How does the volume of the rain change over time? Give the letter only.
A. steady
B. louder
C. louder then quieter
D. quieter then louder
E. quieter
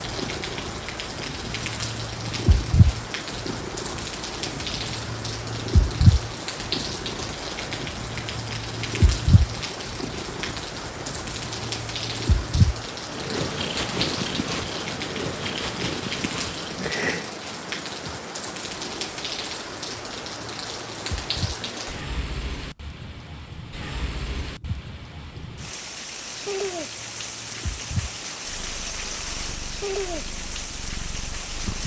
A.